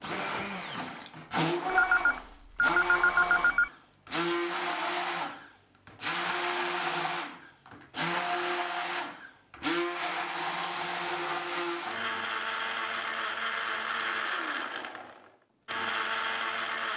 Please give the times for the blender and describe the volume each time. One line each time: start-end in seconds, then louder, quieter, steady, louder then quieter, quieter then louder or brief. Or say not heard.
0.0-16.9 steady.